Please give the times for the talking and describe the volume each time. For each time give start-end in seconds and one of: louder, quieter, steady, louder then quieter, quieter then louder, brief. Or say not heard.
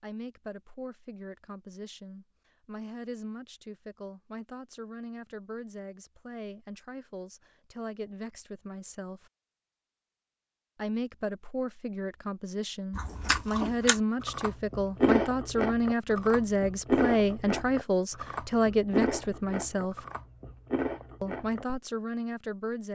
0.0-9.3 steady
10.8-20.1 louder
21.2-22.9 brief.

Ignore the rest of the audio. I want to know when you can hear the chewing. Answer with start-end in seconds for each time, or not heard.
12.9-21.8.